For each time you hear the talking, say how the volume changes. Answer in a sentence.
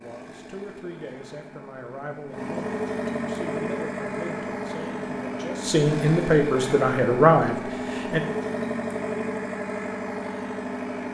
The talking can be heard from 0.0 to 8.2 s, getting louder.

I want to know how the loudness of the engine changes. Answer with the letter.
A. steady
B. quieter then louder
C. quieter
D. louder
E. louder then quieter
D.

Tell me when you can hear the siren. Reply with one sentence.
You can't hear the siren here.